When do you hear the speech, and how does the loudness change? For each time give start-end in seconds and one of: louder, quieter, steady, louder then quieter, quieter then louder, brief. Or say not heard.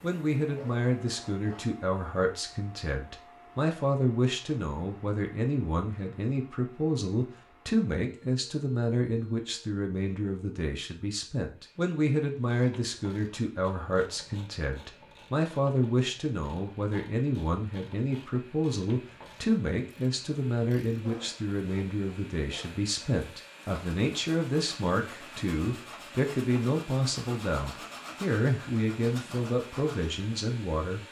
0.0-31.0 steady.